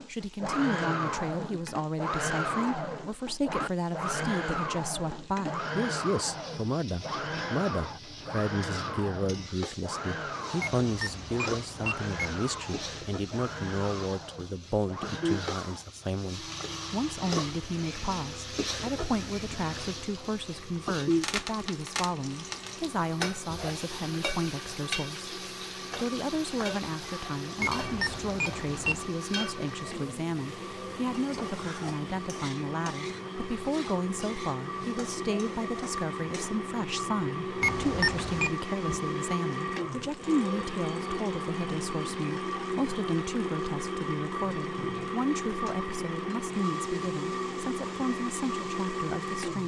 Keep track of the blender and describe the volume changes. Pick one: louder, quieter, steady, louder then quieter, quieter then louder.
quieter then louder.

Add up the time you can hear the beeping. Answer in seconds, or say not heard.
4 s.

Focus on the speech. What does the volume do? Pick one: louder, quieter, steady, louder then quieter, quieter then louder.
steady.